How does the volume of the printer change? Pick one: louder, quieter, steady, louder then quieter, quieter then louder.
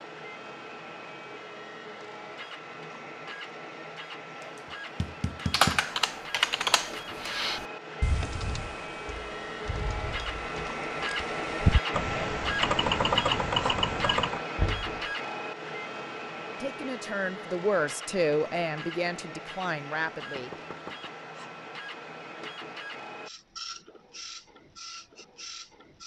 louder then quieter.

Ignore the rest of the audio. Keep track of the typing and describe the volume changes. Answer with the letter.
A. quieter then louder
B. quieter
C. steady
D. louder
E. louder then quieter
A.